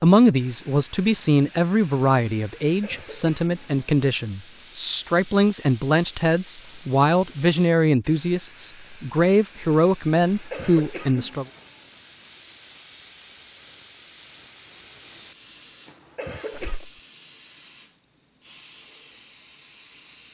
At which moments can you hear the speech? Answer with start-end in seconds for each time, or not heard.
0.0-11.4.